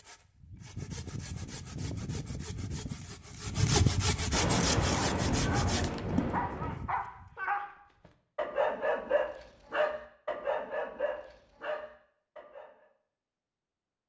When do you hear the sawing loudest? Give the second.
4 s.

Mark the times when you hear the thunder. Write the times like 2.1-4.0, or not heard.
4.3-6.8.